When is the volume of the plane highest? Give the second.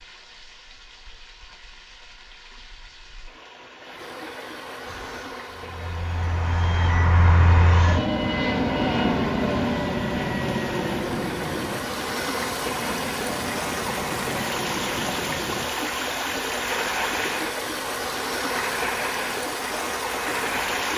9 s.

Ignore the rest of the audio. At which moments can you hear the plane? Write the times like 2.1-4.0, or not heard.
4.8-20.9.